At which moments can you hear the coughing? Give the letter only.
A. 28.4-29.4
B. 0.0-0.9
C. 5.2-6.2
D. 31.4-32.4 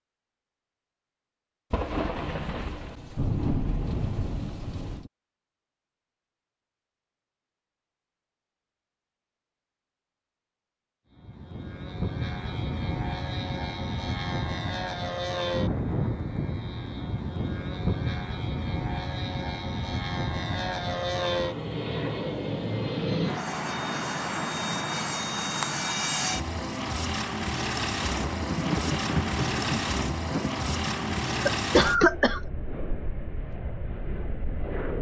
D.